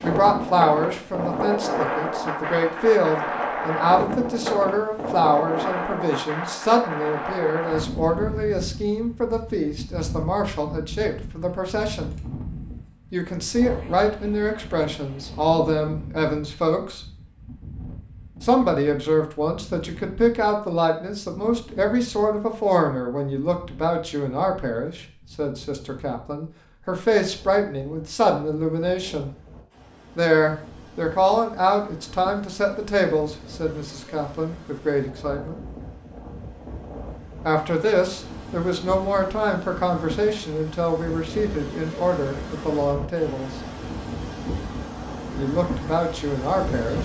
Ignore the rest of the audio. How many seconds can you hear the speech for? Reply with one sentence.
The speech can be heard for 40 seconds in total.